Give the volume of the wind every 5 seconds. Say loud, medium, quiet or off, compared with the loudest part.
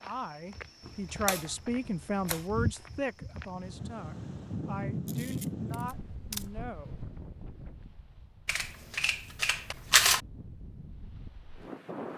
loud, loud, medium.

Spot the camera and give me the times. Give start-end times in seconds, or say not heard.
0.8-2.5, 5.0-6.5, 8.4-10.2.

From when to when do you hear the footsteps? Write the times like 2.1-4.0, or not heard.
0.0-3.8.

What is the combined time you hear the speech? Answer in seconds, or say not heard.
7 s.